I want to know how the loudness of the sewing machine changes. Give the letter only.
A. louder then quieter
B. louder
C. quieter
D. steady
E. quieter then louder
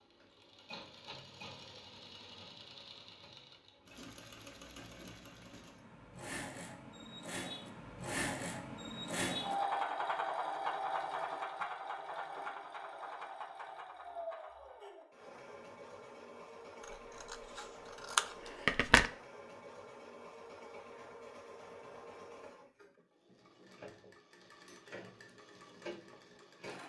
A.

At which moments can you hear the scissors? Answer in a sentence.
The scissors can be heard from 17.2 to 19.1 s.